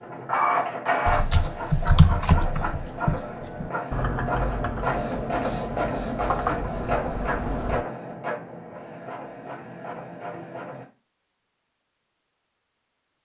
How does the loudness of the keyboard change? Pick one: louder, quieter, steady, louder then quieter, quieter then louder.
quieter then louder.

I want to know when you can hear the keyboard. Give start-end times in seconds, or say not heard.
1.1-7.8.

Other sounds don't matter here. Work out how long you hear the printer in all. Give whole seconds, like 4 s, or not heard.
11 s.